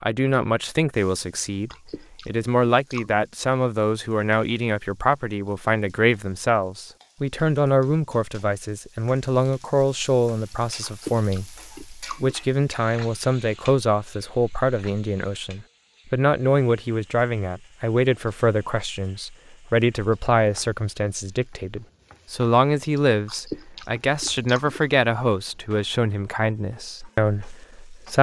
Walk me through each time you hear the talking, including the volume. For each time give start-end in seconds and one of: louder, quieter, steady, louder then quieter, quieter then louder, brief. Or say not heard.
0.0-28.1 steady.